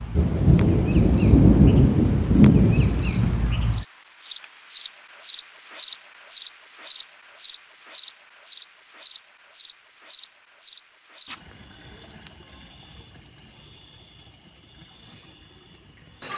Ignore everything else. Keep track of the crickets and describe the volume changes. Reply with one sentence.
The volume of the crickets goes up, then down.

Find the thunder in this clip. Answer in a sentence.
The thunder can be heard from 0.1 to 3.5 s.